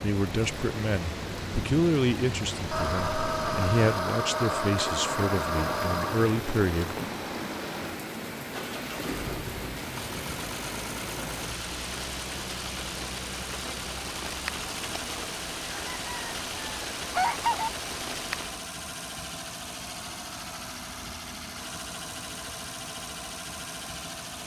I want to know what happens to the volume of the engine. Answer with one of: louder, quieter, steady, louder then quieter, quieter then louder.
steady.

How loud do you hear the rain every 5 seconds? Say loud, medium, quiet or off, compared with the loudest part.
loud, loud, loud, loud, off.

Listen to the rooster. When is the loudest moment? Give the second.
17 s.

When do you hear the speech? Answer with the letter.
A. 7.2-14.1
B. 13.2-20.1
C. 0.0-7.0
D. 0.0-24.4
C.